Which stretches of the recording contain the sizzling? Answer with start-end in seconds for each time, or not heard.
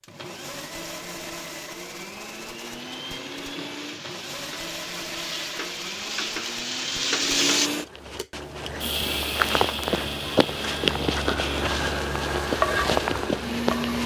2.8-7.7, 12.4-13.9.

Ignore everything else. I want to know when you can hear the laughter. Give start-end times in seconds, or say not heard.
not heard.